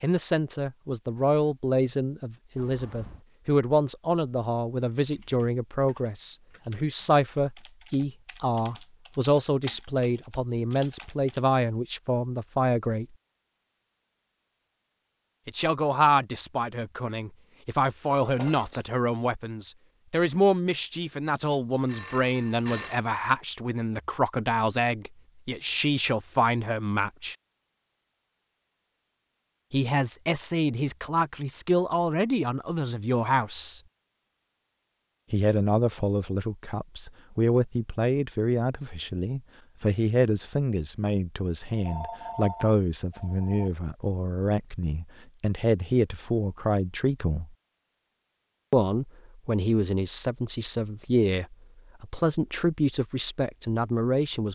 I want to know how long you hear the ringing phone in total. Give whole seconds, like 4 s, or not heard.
4 s.